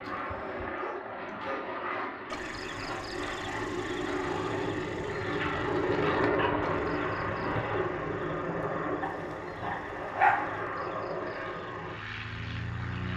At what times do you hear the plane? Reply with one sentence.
You can hear the plane from 0.0 to 13.1 s.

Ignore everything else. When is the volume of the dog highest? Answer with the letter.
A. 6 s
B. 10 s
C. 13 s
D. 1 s
B.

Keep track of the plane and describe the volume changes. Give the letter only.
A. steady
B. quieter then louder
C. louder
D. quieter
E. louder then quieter
E.